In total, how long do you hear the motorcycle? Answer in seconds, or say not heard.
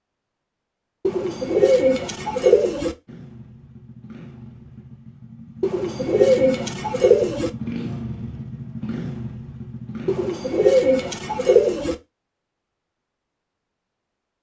7 s.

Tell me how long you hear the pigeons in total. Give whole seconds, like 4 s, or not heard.
6 s.